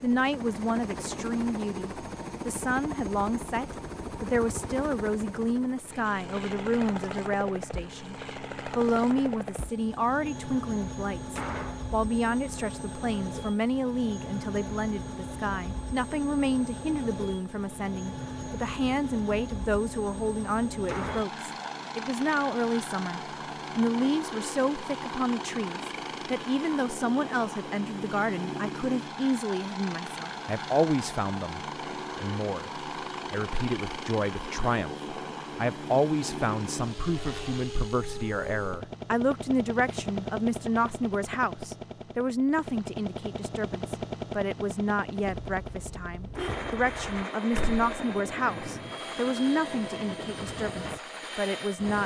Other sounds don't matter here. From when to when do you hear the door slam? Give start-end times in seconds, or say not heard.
11.2-11.8, 20.8-21.2, 47.5-48.0.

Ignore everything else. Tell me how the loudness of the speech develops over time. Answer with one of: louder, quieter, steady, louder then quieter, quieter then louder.
steady.